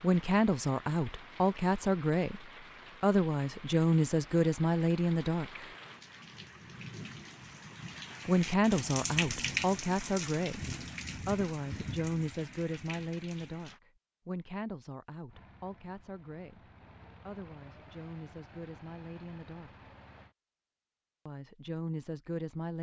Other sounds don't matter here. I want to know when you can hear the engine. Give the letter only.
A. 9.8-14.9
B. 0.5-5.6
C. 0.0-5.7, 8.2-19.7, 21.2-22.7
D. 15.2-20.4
D.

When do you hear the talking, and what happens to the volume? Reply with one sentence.
You can hear the talking from 0.0 to 5.7 s, at a steady volume; from 8.2 to 19.7 s, getting quieter; and briefly from 21.2 to 22.7 s.